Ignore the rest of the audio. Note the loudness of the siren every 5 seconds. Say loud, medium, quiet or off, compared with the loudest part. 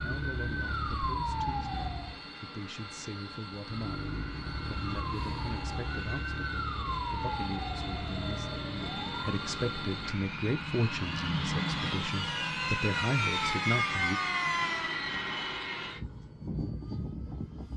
loud, loud, loud, off.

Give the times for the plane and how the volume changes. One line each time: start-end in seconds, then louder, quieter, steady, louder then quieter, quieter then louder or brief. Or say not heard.
0.0-17.7 louder.